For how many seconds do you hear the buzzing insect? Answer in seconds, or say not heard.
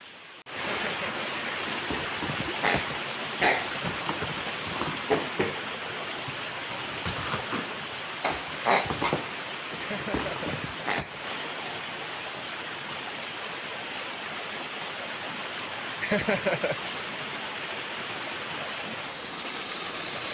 not heard.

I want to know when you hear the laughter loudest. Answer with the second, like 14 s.
16 s.